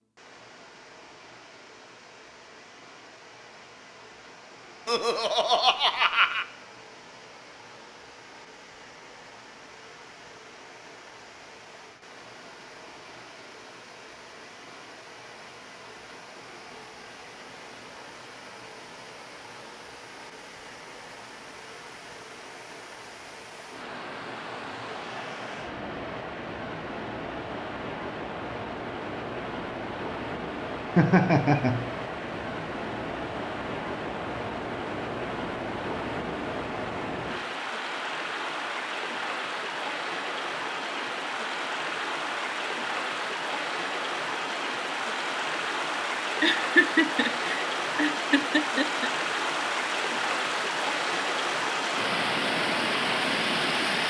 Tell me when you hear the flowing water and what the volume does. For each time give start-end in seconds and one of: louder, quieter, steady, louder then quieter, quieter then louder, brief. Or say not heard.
0.1-54.0 louder.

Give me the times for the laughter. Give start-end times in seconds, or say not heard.
4.8-6.5, 30.9-31.9, 46.4-49.1.